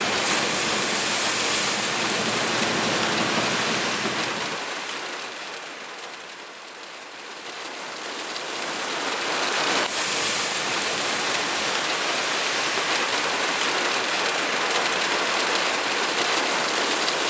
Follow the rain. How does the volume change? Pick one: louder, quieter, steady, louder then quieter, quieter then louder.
quieter then louder.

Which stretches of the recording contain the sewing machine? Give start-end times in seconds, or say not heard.
0.0-4.6.